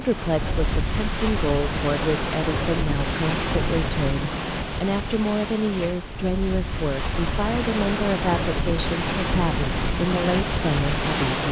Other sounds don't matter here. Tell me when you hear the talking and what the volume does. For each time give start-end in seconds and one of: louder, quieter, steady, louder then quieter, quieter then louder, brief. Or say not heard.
0.0-11.4 steady.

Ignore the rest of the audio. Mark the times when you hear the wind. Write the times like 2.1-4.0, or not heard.
0.0-11.4.